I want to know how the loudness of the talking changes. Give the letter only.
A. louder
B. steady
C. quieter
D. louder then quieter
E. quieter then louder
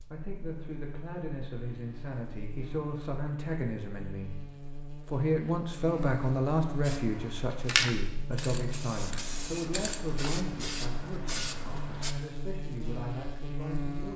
D.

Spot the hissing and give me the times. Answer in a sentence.
The hissing can be heard from 6.8 to 12.2 s.